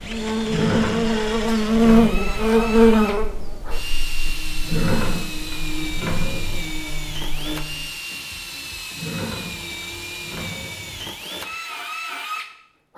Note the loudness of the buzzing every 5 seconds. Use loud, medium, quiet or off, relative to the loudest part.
loud, quiet, off.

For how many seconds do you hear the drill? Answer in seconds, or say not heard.
13 s.